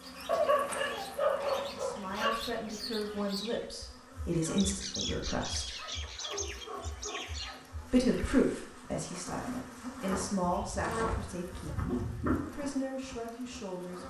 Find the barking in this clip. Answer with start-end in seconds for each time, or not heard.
0.2-2.3, 5.8-7.7, 10.4-12.4.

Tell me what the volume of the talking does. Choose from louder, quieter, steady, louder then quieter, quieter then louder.
louder then quieter.